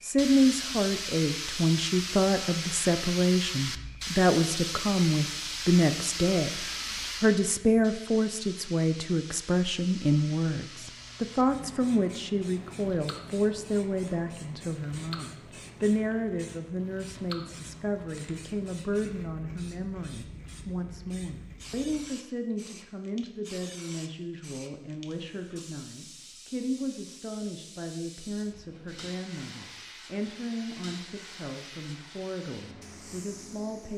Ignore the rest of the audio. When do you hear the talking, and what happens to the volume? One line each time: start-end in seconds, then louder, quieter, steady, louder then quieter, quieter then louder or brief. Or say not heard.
0.0-33.9 quieter.